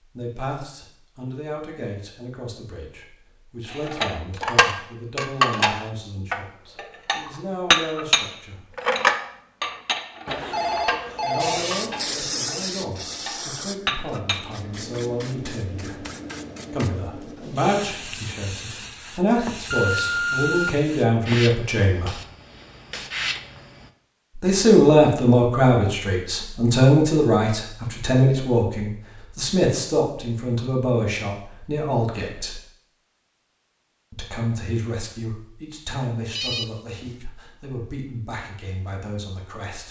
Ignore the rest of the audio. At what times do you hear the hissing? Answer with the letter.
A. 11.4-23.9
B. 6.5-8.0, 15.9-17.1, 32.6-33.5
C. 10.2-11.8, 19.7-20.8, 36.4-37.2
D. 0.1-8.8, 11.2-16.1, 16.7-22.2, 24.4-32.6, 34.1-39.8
A.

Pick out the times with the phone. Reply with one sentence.
The phone can be heard from 10.2 to 11.8 s, from 19.7 to 20.8 s and from 36.4 to 37.2 s.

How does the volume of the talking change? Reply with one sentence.
The loudness of the talking goes up, then down.